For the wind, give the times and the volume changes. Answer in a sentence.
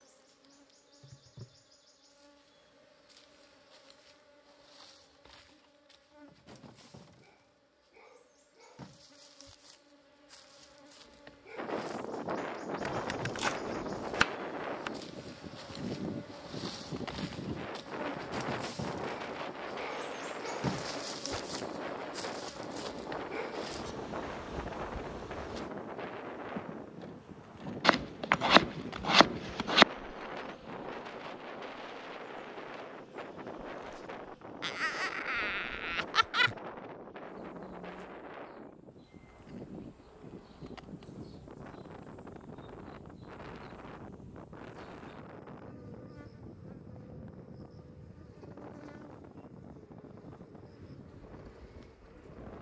You can hear the wind from 11.6 to 52.5 s, getting quieter.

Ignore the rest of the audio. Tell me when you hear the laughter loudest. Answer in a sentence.
The loudest moment of the laughter is at 36 seconds.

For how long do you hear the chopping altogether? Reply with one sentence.
The chopping can be heard for 4 seconds in total.